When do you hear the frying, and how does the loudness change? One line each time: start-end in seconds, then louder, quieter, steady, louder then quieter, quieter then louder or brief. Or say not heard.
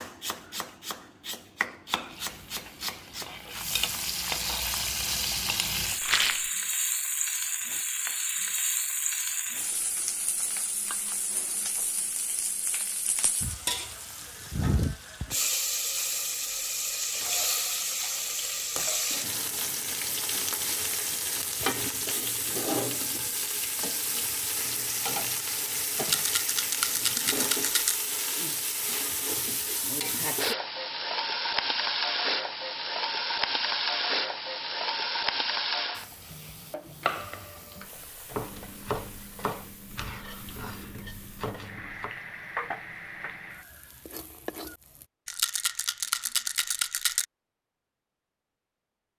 2.0-45.0 quieter.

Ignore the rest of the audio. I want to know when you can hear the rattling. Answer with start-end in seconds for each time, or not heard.
6.0-6.5, 25.9-27.9, 45.2-47.2.